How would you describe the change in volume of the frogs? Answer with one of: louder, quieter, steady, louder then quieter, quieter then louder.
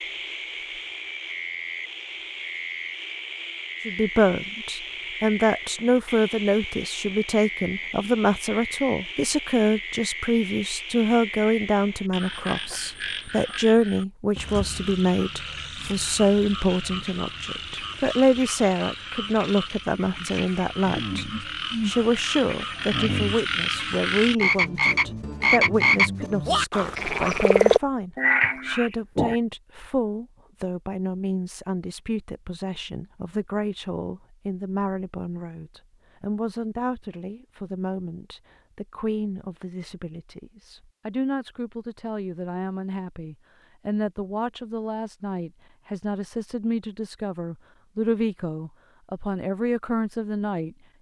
louder.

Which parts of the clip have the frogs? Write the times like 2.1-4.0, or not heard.
0.0-29.4.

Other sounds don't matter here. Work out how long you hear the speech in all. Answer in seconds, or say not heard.
47 s.